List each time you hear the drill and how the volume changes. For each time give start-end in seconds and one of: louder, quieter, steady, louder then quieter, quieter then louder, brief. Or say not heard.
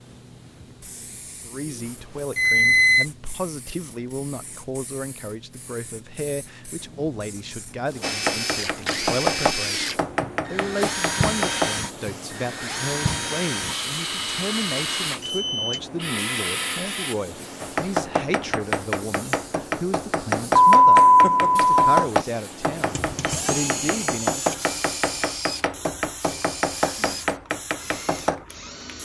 8.0-17.1 steady
22.9-29.0 quieter.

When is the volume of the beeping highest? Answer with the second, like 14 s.
21 s.